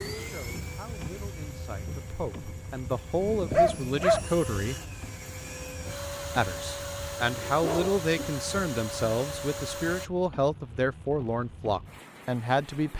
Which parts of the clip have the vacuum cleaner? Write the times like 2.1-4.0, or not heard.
0.0-10.1.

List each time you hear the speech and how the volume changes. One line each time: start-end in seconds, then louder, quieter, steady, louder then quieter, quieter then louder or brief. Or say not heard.
0.1-4.8 louder
6.3-12.9 steady.